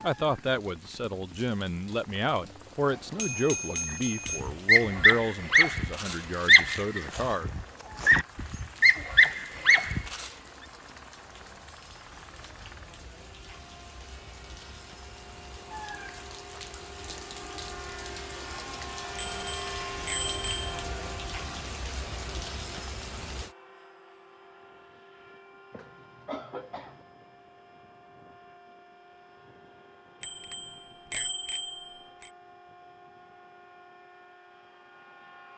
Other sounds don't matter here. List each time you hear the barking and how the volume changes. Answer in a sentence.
You can hear the barking from 4.2 to 10.3 s, getting quieter then louder.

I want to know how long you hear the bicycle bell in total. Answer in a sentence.
The bicycle bell can be heard for 5 seconds in total.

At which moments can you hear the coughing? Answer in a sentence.
You can hear the coughing from 25.7 to 27.1 s.